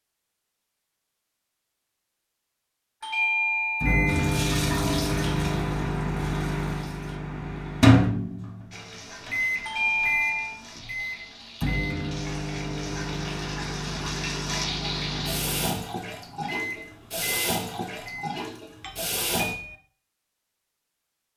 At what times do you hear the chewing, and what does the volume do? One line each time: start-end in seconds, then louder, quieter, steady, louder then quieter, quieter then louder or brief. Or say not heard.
not heard.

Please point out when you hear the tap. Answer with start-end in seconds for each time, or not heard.
4.0-7.2, 8.7-19.6.